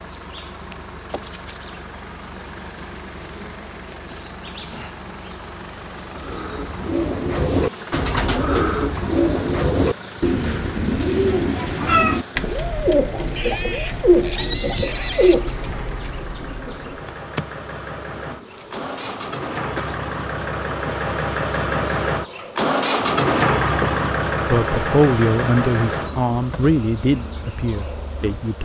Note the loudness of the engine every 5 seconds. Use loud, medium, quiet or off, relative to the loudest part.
quiet, quiet, quiet, medium, loud, medium.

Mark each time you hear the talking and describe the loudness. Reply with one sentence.
You can hear the talking from 24.5 to 28.5 s, getting quieter.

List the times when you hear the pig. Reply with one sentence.
You can hear the pig from 13.3 to 15.3 s.